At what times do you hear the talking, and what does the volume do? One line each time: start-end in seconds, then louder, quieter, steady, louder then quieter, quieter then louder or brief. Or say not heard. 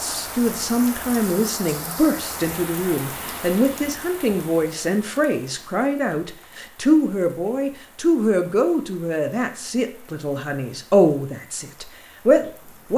0.0-12.9 steady.